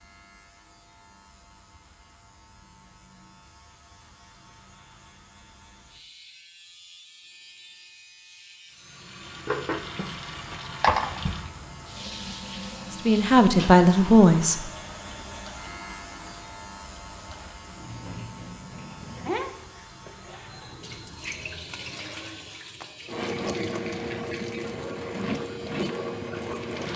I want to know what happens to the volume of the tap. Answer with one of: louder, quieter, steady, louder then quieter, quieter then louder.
quieter then louder.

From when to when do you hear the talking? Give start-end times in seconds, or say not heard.
12.9-14.7.